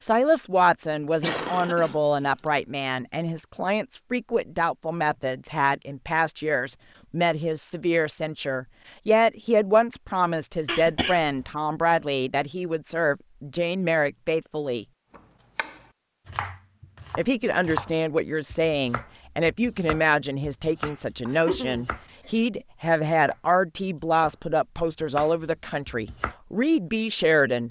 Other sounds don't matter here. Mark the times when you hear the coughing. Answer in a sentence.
The coughing can be heard from 1.2 to 2.0 s, from 10.7 to 11.5 s and from 21.2 to 22.3 s.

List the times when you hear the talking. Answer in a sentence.
The talking can be heard from 0.0 to 14.8 s and from 17.1 to 27.6 s.